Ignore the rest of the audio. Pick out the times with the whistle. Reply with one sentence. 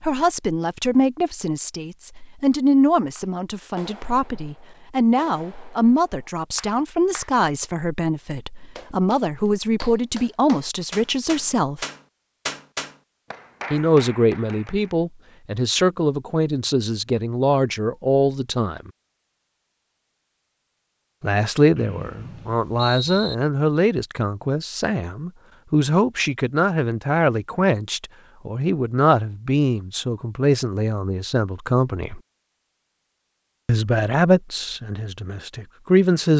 You can hear the whistle from 21.8 to 23.4 s.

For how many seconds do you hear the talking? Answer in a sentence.
You can hear the talking for 31 seconds altogether.